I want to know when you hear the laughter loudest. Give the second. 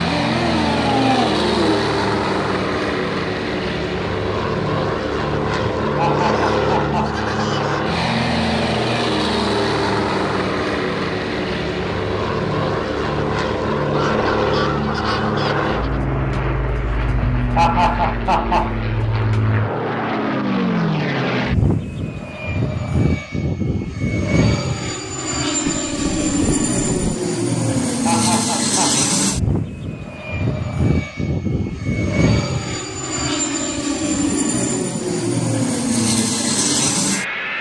18 s.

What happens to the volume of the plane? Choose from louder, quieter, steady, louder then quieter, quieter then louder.
steady.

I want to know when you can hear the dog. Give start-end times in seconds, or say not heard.
0.0-1.8.